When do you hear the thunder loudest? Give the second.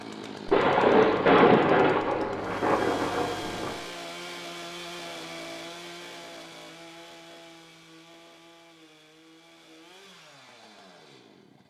1 s.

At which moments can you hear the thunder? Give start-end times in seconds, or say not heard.
0.5-3.8.